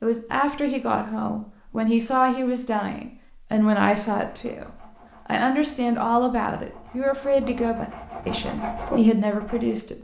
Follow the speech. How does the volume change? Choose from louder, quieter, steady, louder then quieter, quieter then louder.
steady.